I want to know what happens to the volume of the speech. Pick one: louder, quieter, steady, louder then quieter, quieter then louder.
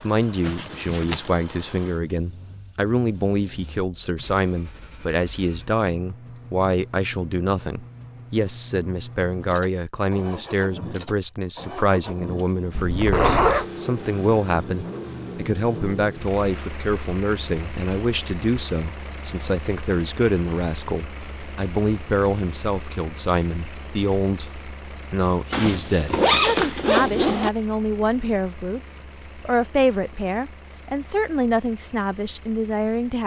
steady.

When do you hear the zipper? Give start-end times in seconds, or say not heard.
0.4-1.3, 12.8-13.7, 25.5-27.5.